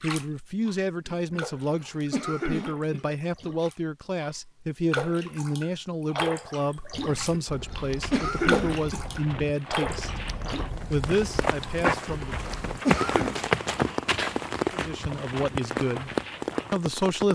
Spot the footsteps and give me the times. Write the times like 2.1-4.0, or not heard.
7.8-16.8.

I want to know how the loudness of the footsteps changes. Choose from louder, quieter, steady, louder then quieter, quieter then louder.
louder then quieter.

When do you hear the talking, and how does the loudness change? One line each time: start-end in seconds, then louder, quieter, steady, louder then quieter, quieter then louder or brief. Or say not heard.
0.0-10.2 steady
10.9-12.5 brief
14.7-16.1 brief
16.7-17.3 brief.